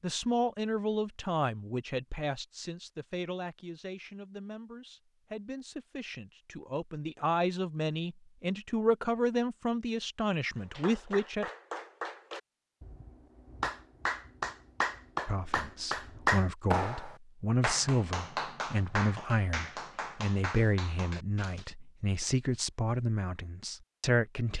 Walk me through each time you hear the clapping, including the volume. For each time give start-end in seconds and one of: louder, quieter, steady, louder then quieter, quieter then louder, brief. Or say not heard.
10.6-21.7 louder then quieter.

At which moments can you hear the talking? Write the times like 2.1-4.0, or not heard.
0.0-11.5, 15.2-24.5.